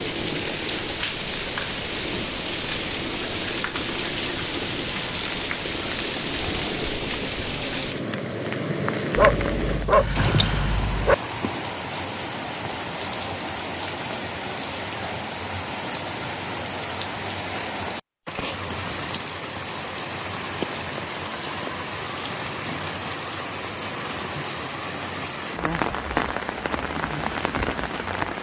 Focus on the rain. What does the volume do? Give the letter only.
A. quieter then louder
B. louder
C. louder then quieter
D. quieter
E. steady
E.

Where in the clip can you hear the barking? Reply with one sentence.
You can hear the barking from 9.2 to 11.2 s.